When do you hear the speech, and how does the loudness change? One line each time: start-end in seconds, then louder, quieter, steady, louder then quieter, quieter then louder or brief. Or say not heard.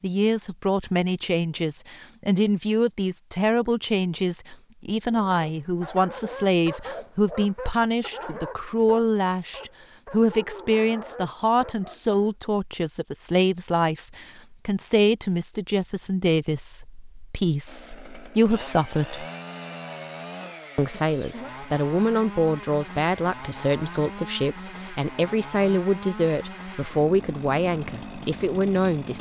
0.0-19.2 steady
20.8-29.1 steady.